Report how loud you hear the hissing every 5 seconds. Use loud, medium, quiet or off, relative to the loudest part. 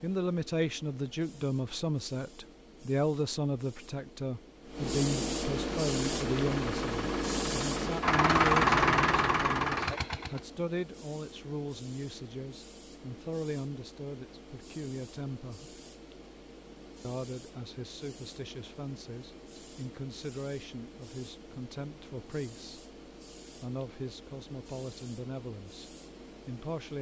quiet, loud, quiet, quiet, quiet, quiet.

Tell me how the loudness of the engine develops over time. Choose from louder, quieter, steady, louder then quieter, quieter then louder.
louder then quieter.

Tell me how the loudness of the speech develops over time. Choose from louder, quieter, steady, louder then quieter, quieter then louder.
quieter.